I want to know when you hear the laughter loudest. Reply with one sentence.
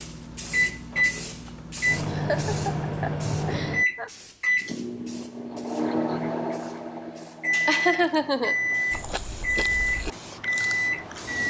The loudest moment of the laughter is at 8 seconds.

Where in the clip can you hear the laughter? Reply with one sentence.
The laughter can be heard from 1.4 to 4.1 s and from 7.5 to 8.6 s.